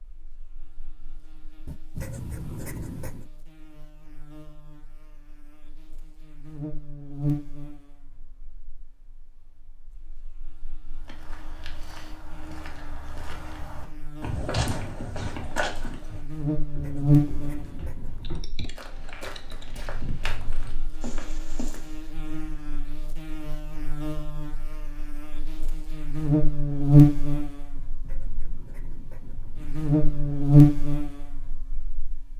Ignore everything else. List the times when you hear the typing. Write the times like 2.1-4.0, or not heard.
18.2-19.6.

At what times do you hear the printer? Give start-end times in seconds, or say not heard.
not heard.